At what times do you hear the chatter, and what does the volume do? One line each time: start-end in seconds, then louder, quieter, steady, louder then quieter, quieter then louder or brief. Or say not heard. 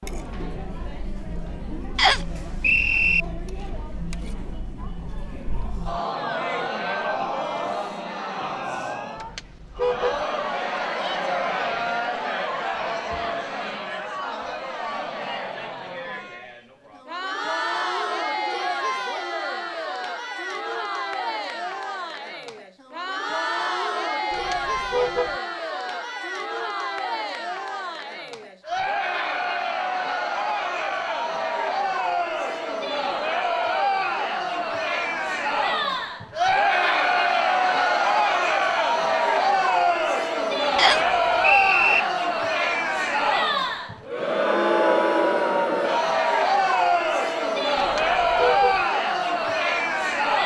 0.0-50.4 louder.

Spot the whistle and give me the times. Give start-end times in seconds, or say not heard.
1.9-3.2, 40.8-42.0.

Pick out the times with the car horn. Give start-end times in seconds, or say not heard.
9.2-10.2, 24.3-25.4, 47.8-48.9.